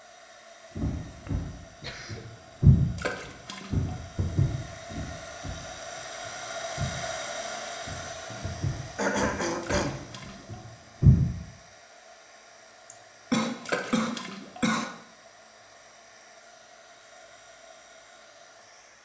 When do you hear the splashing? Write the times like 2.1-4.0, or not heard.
3.0-3.9, 9.6-10.6, 13.7-14.6.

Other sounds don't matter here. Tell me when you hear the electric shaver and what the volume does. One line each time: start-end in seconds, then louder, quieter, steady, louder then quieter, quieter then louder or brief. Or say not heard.
not heard.